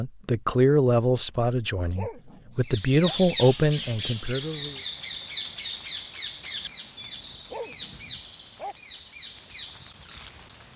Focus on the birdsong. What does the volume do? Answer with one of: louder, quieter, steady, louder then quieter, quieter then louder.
quieter.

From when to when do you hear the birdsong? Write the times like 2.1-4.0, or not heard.
2.6-10.7.